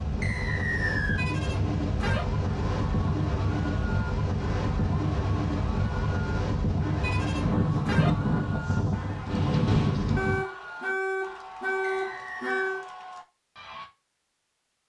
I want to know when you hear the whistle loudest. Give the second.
1 s.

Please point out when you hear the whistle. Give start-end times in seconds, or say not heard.
0.2-1.2, 11.8-12.7.